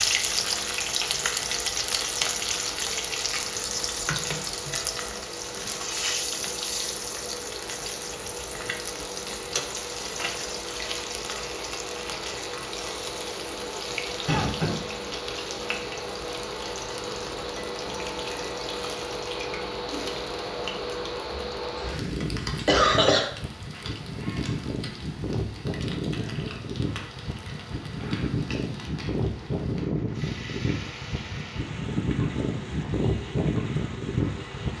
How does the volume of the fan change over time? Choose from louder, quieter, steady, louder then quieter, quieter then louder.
louder.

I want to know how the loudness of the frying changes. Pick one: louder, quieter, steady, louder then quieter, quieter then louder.
quieter.